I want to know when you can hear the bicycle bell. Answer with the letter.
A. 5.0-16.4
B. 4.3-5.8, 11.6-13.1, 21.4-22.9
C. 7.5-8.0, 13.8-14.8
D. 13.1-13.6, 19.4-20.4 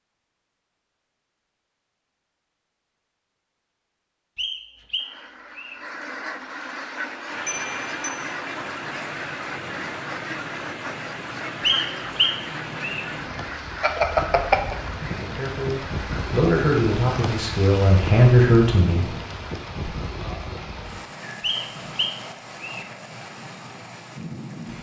C.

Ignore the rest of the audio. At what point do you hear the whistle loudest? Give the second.
12 s.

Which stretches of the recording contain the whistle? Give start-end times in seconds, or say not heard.
4.3-5.8, 11.6-13.1, 21.4-22.9.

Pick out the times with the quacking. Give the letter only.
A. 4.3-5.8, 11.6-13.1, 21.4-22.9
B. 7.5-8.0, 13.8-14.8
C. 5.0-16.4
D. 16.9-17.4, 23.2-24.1
C.